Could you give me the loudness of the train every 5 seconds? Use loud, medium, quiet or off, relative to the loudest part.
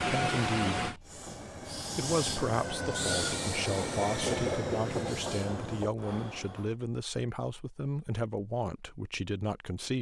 loud, medium.